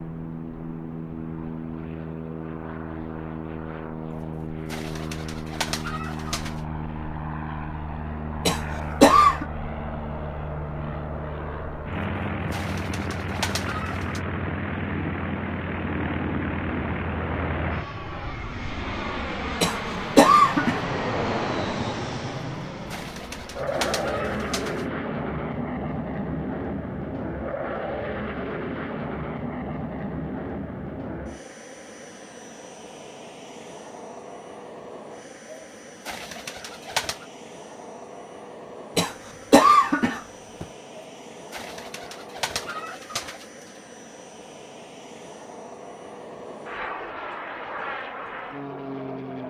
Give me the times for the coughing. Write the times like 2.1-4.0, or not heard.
8.4-9.4, 19.6-20.8, 39.0-40.6.